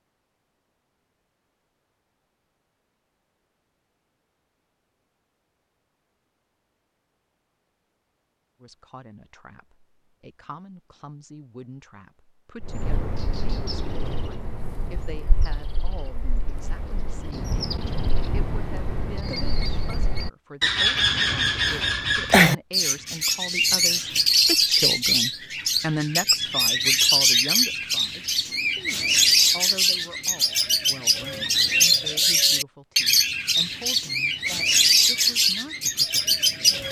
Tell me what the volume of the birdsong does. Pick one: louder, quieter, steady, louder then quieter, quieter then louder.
louder.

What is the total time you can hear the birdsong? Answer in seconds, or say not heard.
24 s.